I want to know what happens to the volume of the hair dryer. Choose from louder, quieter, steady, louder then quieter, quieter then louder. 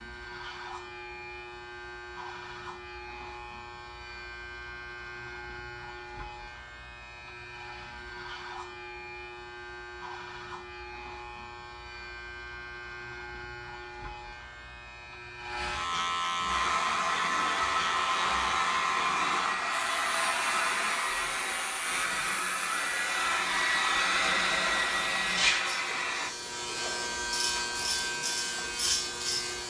steady.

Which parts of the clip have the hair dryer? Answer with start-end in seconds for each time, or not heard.
16.4-26.4.